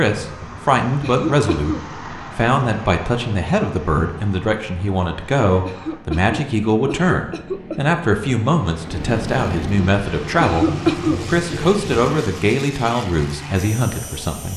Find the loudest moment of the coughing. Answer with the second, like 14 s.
11 s.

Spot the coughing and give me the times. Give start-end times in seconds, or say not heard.
1.0-1.9, 5.7-8.0, 10.4-11.2.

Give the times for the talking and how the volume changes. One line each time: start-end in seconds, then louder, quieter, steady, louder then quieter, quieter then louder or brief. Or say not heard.
0.0-14.5 steady.